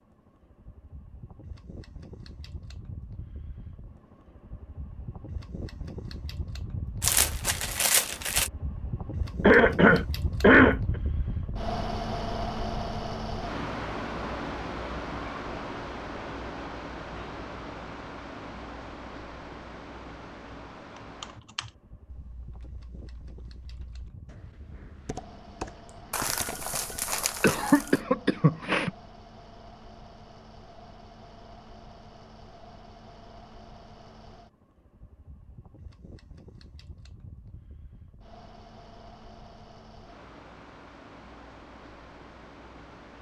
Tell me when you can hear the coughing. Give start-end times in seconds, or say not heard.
9.4-10.8, 27.1-28.9.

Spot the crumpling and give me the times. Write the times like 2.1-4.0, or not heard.
7.0-8.5, 26.1-28.0.